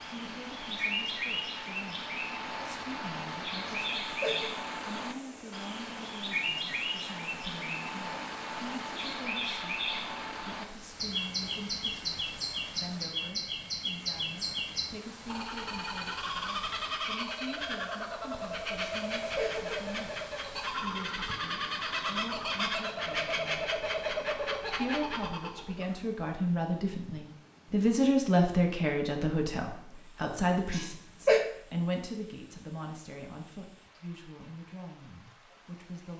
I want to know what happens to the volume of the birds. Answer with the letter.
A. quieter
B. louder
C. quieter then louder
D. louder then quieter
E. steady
E.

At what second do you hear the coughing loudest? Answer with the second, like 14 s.
31 s.